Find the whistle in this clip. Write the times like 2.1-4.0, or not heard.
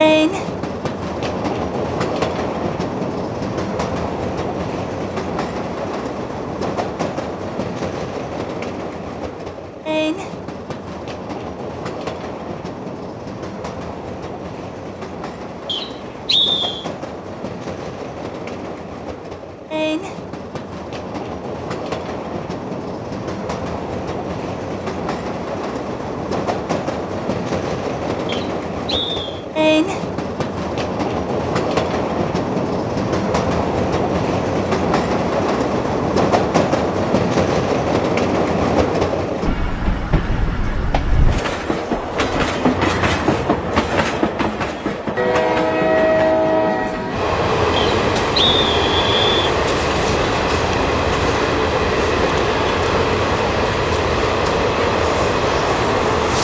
15.7-16.9, 28.2-29.4, 47.8-49.4.